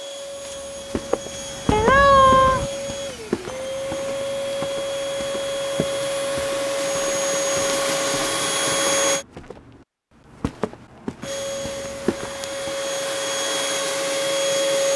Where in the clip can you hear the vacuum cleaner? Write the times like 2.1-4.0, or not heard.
0.0-9.2, 11.2-14.9.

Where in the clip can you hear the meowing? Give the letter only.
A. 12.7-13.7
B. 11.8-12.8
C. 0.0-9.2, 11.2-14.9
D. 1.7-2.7
D.